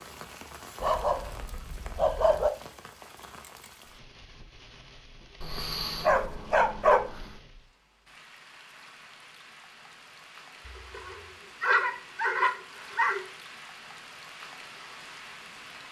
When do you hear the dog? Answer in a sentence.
You can hear the dog from 0.8 to 2.5 s, from 5.4 to 7.4 s and from 10.7 to 13.2 s.